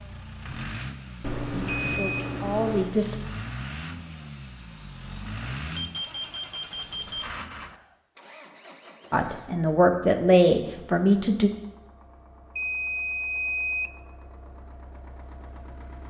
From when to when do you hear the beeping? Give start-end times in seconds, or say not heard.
1.2-3.0, 5.8-7.2, 12.6-13.9.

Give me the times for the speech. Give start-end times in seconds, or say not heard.
1.5-3.1, 9.1-11.5.